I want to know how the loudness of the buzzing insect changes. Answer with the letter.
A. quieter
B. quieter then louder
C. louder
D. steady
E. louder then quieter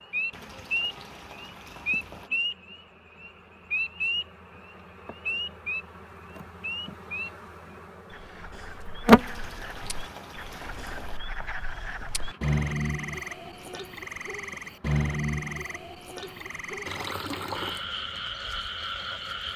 E.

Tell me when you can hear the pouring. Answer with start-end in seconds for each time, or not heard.
0.3-2.3, 9.2-11.2, 16.9-17.9.